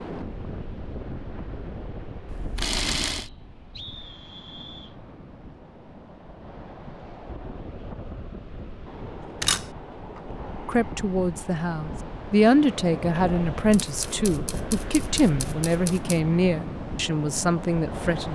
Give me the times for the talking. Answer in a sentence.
You can hear the talking from 10.7 to 18.2 s.